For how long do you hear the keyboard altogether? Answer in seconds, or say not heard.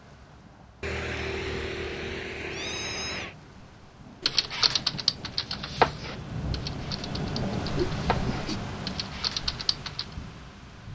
6 s.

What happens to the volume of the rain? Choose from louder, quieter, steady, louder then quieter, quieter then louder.
louder then quieter.